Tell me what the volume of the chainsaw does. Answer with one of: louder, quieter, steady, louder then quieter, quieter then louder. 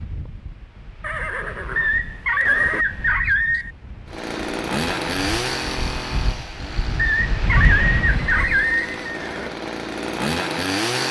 quieter then louder.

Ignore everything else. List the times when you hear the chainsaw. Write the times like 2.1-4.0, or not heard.
4.0-11.0.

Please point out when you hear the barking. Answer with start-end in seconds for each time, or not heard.
1.8-3.7, 7.0-8.9.